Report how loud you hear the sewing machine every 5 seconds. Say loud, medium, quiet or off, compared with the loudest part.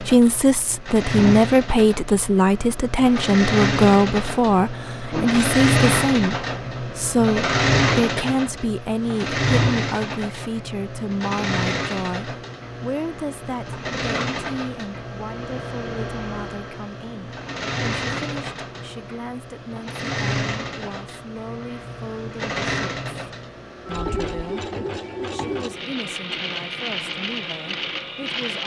medium, loud, medium, medium, medium, medium.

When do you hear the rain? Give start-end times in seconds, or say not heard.
not heard.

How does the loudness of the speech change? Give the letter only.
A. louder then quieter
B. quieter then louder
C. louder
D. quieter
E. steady
D.